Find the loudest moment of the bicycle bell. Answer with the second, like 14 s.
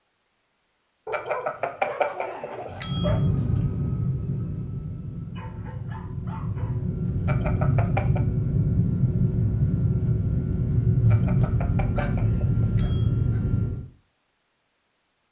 2 s.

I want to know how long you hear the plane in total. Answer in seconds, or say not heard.
11 s.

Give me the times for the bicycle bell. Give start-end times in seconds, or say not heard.
1.1-3.2, 7.2-8.2, 11.1-13.2.